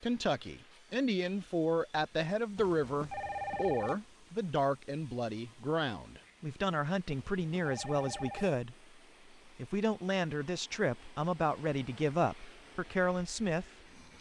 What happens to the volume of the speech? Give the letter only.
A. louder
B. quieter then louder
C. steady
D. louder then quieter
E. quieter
C.